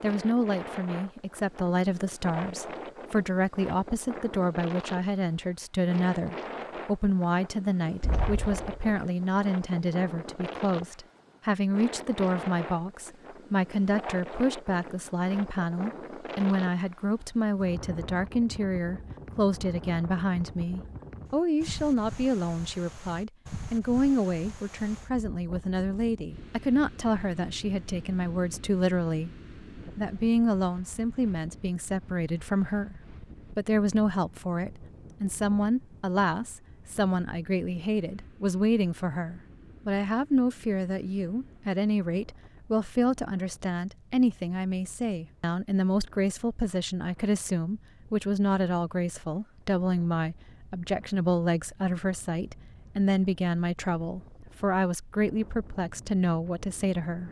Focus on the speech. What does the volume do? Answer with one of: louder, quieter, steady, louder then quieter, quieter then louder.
steady.